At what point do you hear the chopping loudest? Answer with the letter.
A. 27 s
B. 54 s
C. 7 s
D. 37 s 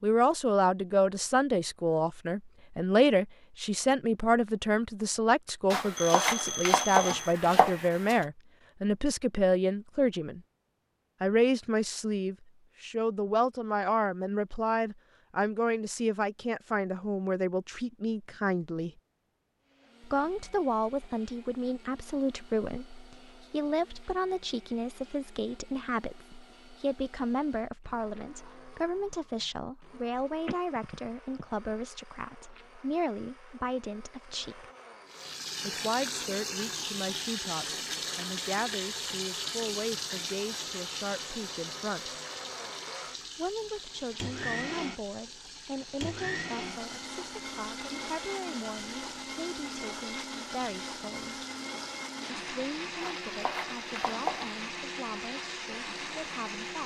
C.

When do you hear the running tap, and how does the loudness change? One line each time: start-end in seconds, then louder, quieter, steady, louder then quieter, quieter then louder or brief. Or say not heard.
35.0-56.8 quieter.